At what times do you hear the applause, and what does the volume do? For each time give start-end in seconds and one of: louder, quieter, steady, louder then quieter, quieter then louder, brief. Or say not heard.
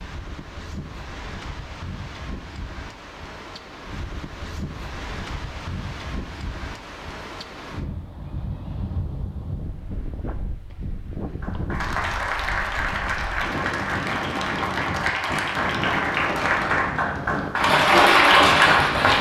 11.4-19.1 louder.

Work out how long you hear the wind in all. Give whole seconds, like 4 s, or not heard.
19 s.